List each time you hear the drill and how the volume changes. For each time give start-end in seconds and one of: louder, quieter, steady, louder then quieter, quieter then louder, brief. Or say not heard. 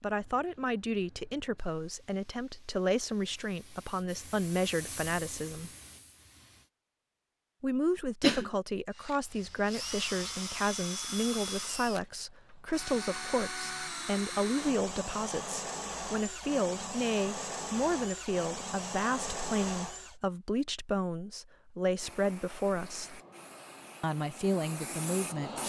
8.9-20.1 steady.